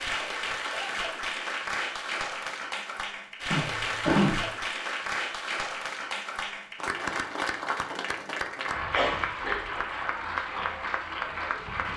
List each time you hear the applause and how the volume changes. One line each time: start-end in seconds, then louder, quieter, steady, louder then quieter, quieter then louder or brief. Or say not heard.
0.0-11.9 steady.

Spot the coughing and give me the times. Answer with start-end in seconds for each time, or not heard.
3.5-4.5, 8.9-9.8.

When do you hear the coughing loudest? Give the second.
4 s.